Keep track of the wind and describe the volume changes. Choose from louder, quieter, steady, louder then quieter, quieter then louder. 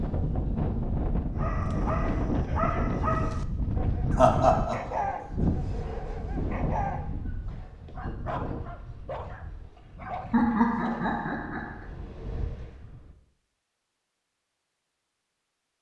quieter.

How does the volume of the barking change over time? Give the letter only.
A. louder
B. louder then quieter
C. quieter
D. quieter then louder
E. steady
C.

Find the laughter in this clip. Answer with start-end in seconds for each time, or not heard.
4.2-5.0, 10.3-11.8.